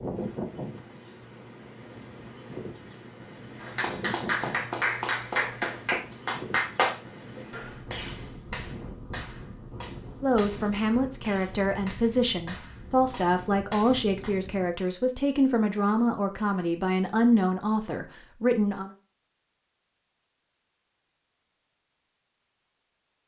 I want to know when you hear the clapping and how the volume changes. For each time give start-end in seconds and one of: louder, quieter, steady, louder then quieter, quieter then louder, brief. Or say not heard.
3.6-14.3 quieter.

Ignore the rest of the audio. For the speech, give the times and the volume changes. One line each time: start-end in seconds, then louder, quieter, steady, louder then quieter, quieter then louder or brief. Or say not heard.
10.2-18.9 steady.